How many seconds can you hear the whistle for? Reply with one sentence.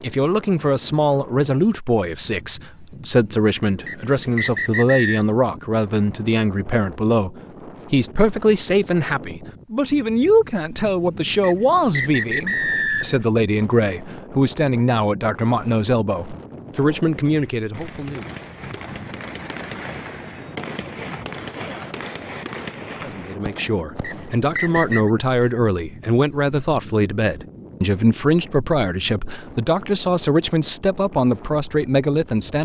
The whistle can be heard for 4 seconds in total.